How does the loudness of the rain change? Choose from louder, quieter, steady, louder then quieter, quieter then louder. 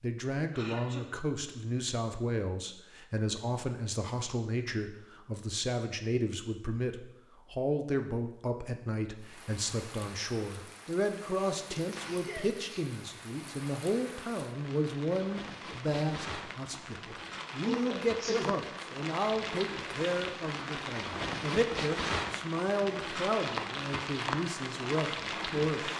louder.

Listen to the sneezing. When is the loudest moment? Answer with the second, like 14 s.
18 s.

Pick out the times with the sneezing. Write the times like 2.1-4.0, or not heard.
0.5-1.1, 11.3-12.8, 17.6-18.6.